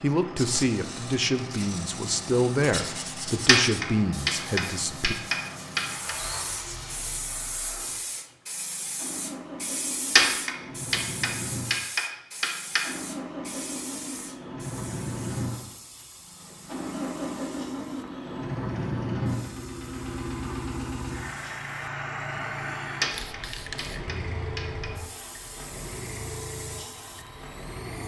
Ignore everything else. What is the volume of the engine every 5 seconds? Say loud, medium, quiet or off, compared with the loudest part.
medium, medium, medium, loud, loud, medium.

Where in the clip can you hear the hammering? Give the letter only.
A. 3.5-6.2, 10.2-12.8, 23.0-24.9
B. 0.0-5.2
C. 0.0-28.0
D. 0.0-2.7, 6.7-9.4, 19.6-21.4
A.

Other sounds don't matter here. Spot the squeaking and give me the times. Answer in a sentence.
The squeaking can be heard from 6.0 to 7.5 s.